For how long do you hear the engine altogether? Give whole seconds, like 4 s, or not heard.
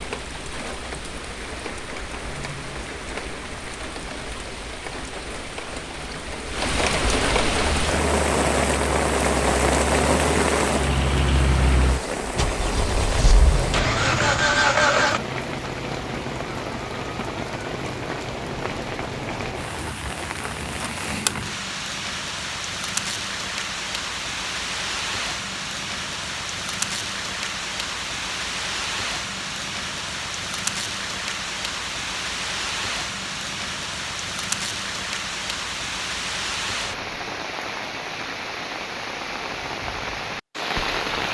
8 s.